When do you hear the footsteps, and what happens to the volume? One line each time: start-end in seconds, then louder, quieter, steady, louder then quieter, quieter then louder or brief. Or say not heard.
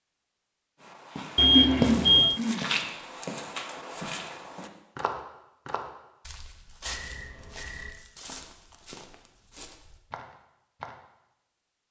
0.8-10.9 quieter.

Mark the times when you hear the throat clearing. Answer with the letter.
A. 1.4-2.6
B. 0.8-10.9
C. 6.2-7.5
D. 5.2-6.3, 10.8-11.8
A.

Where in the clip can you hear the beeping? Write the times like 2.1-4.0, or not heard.
1.4-2.4, 6.8-8.0.